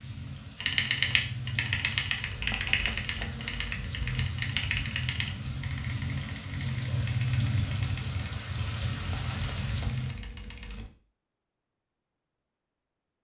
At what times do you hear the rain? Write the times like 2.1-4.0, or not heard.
0.0-10.2.